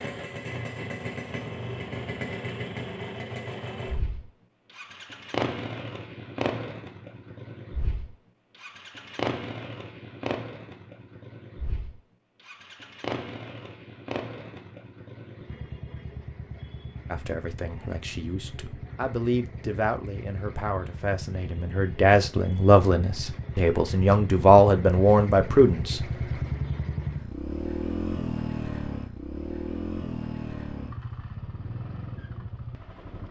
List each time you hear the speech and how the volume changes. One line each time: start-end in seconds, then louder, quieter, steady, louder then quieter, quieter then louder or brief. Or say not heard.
17.1-26.0 louder.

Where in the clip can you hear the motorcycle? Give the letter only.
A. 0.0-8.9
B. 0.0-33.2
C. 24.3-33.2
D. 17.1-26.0
B.